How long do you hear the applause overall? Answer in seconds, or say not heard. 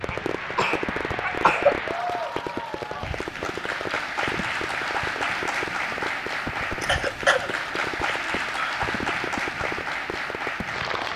11 s.